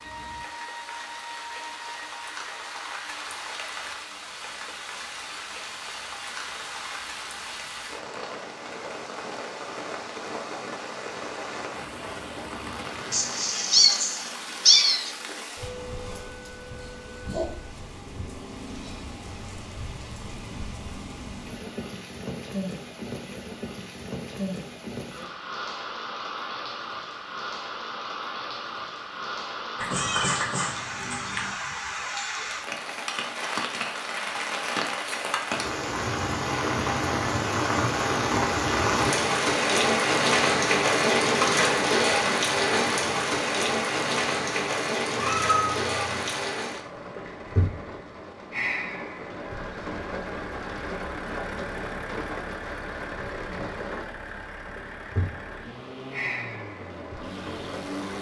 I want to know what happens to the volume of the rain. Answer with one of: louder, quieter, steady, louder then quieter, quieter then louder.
louder then quieter.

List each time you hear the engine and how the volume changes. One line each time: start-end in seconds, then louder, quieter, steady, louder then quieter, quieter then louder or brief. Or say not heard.
49.3-58.1 steady.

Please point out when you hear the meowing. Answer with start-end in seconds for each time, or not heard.
13.1-15.1, 29.8-31.6, 45.1-46.2.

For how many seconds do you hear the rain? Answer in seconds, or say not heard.
58 s.